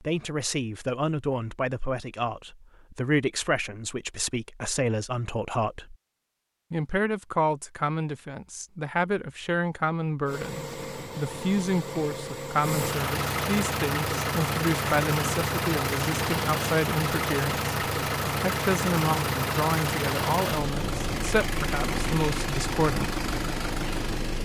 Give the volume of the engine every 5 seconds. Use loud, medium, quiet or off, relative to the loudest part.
off, off, loud, loud, loud.